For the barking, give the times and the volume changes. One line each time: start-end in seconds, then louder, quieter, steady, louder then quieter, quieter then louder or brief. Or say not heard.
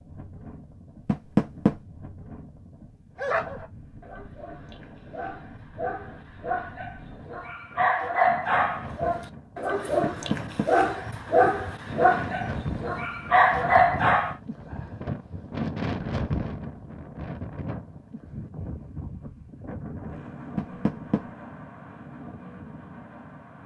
3.1-14.3 louder.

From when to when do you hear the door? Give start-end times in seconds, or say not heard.
1.1-1.8, 10.0-10.7, 20.6-21.2.